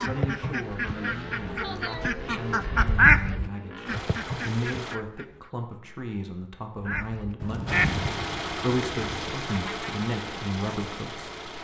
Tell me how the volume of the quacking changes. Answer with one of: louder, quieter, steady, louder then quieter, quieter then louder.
louder then quieter.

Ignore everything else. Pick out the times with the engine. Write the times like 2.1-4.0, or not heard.
0.0-5.0, 7.7-11.5.